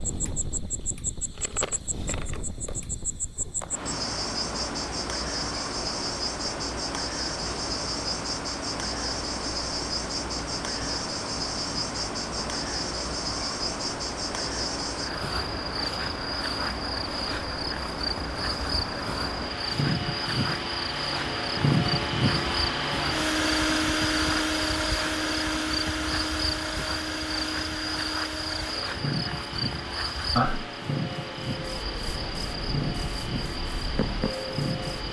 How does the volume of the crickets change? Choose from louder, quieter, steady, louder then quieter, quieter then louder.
steady.